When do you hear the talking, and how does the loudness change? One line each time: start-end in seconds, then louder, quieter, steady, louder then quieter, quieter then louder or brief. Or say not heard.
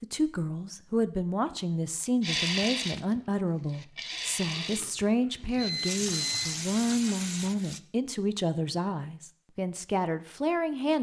0.0-10.9 steady.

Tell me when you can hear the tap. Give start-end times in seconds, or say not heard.
2.2-7.8.